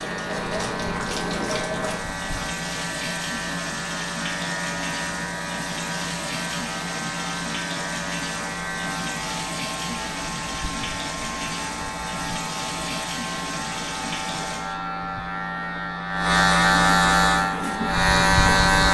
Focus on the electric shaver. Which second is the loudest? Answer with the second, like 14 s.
17 s.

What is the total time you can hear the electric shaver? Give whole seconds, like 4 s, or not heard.
19 s.